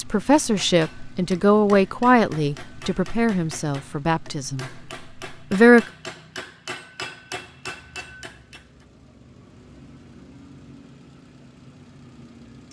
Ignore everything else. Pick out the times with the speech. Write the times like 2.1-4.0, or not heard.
0.0-4.7, 5.3-5.8.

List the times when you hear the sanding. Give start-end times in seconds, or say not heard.
not heard.